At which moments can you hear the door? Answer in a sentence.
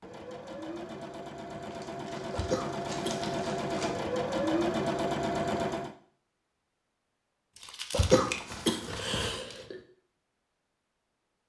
The door can't be heard in this clip.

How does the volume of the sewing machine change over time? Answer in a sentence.
The volume of the sewing machine goes up.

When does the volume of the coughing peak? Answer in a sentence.
The volume of the coughing peaks at 8 seconds.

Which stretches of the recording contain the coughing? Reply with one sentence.
The coughing can be heard from 2.3 to 3.3 s and from 7.9 to 9.8 s.